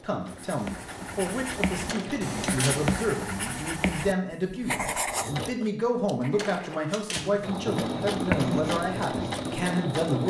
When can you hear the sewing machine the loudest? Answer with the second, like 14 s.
8 s.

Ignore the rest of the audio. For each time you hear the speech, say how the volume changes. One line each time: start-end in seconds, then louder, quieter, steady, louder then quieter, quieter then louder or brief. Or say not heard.
0.0-10.2 steady.